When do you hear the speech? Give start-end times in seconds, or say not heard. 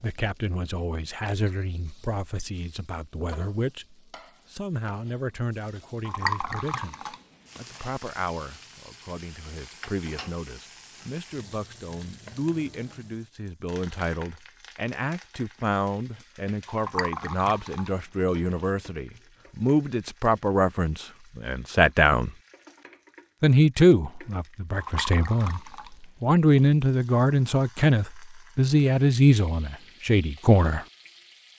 0.0-22.3, 23.4-25.6, 26.2-30.9.